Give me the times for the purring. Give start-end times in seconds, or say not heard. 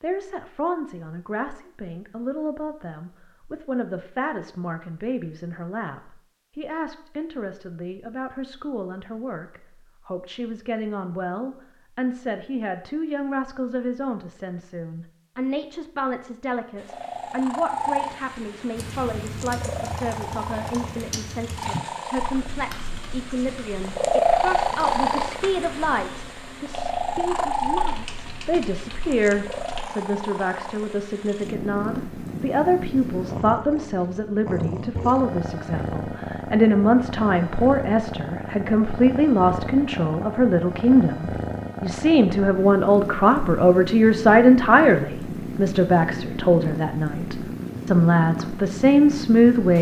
16.8-49.7.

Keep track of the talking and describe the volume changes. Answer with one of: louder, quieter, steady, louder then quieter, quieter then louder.
louder.